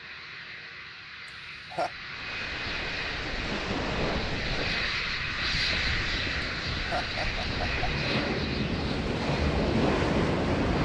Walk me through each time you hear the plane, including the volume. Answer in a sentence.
The plane can be heard from 0.0 to 10.8 s, getting louder then quieter.